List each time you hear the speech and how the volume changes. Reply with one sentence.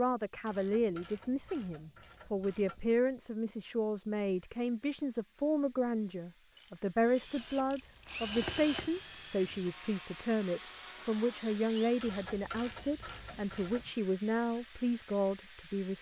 The speech can be heard from 0.0 to 15.9 s, at a steady volume.